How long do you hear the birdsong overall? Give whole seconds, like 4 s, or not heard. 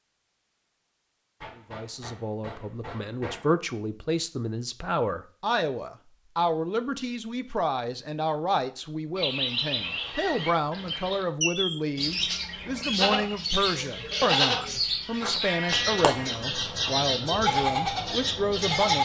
10 s.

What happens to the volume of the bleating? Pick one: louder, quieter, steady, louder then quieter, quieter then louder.
quieter then louder.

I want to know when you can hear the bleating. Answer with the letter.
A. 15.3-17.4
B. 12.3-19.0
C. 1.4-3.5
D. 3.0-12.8
B.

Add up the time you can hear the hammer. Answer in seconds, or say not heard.
2 s.